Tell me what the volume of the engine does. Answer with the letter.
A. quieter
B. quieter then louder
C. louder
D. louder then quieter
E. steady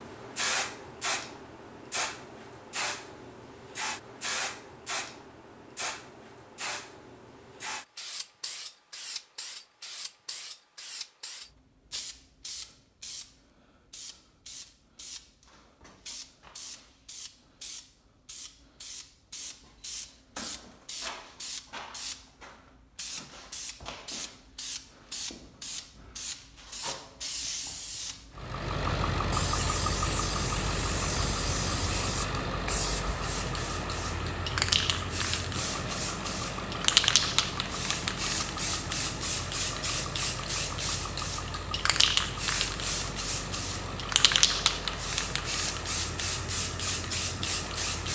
A.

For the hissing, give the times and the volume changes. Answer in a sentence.
You can hear the hissing from 0.0 to 48.1 s, getting quieter then louder.